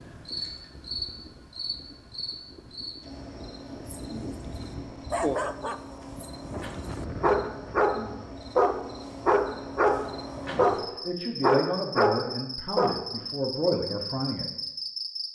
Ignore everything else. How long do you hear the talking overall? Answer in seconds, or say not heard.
4 s.